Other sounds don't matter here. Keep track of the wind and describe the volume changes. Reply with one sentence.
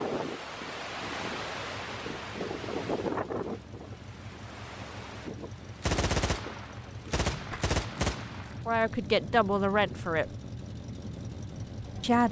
The volume of the wind goes down.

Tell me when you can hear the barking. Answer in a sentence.
You can't hear the barking here.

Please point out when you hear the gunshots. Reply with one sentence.
The gunshots can be heard from 5.8 to 8.6 s.